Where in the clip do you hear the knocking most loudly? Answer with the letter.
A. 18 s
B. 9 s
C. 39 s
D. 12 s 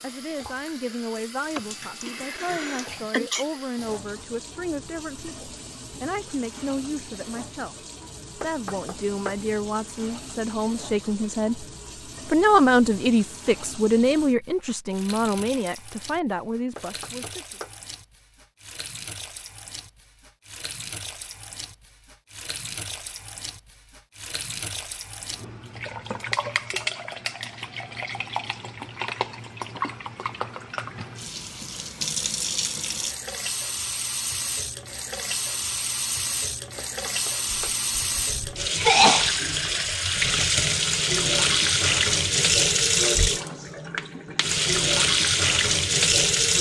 B.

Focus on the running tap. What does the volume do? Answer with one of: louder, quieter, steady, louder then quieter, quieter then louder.
louder.